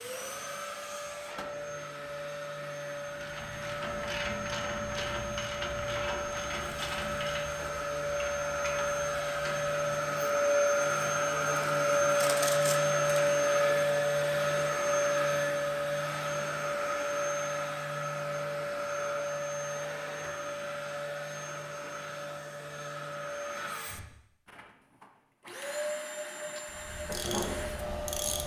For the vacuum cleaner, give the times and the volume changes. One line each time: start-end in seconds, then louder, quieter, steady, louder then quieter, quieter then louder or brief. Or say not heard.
0.0-28.4 louder then quieter.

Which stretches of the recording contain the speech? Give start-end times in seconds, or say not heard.
not heard.